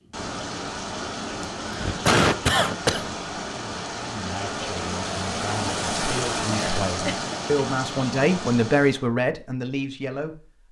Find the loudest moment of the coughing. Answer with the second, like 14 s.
2 s.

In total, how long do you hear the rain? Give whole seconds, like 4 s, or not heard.
9 s.